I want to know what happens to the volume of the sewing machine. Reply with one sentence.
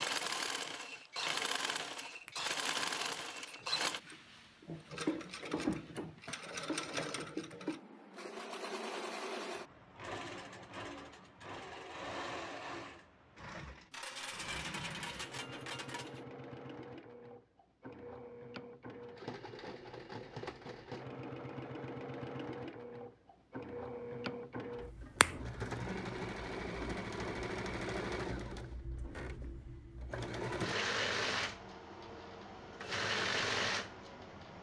The volume of the sewing machine goes down, then up.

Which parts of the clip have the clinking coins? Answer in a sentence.
The clinking coins can be heard from 13.9 to 16.2 s.